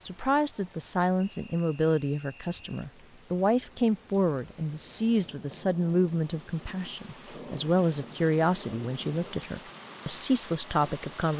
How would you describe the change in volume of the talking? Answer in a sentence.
The volume of the talking stays about the same.